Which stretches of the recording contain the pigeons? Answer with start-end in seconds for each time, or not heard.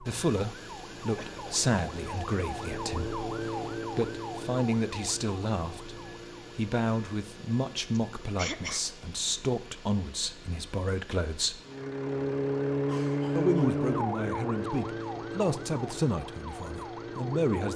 not heard.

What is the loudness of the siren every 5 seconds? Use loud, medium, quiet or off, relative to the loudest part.
medium, quiet, loud, medium.